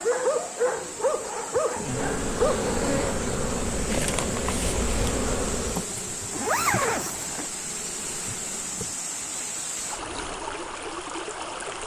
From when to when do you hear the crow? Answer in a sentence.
The crow can't be heard in this clip.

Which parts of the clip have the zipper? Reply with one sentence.
The zipper can be heard from 2.8 to 3.2 s and from 6.3 to 7.5 s.